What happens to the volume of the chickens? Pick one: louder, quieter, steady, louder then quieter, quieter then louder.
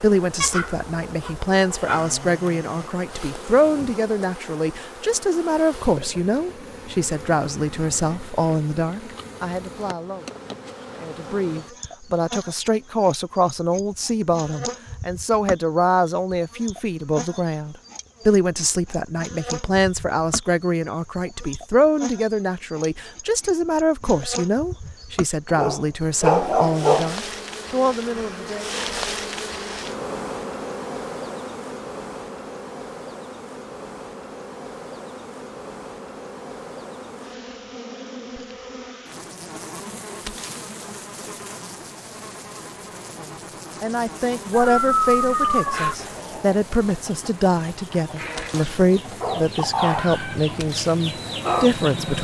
louder.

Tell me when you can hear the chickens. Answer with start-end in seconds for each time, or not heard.
45.6-52.2.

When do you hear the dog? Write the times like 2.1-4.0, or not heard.
0.4-2.1, 25.5-27.1, 44.5-46.0.